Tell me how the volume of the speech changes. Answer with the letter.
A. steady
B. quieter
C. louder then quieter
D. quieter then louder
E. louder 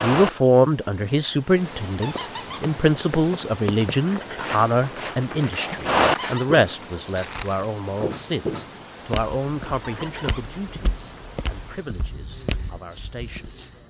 B.